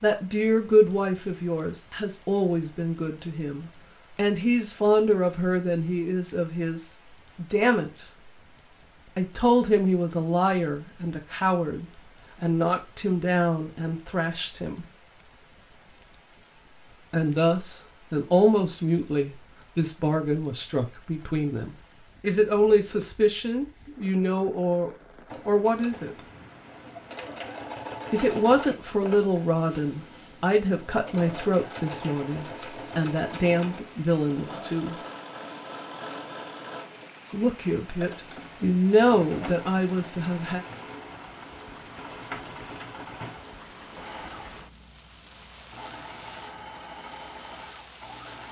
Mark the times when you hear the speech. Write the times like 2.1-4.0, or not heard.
0.0-8.1, 9.2-14.8, 17.1-26.2, 28.1-35.0, 37.3-40.6.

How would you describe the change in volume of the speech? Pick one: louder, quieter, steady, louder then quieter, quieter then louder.
steady.